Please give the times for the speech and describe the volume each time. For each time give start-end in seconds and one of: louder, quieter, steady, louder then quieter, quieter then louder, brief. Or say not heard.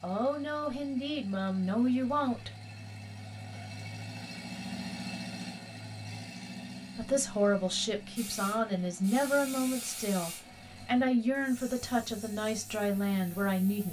0.0-2.5 brief
7.0-13.8 steady.